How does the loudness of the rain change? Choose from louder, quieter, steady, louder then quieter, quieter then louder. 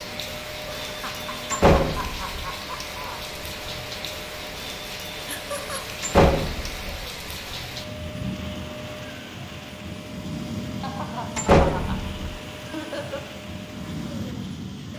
steady.